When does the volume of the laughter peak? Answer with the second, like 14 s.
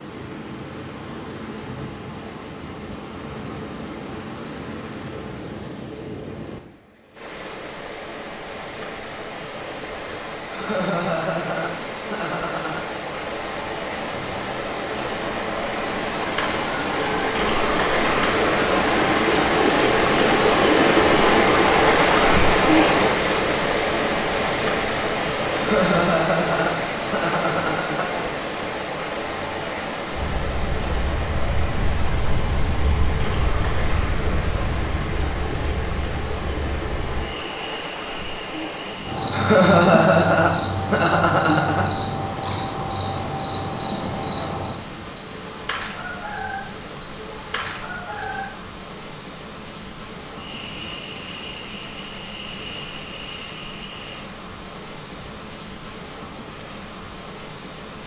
40 s.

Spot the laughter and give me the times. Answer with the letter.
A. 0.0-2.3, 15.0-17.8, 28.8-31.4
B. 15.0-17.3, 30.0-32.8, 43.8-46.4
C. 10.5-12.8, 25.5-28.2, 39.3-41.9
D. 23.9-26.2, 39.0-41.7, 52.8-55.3
C.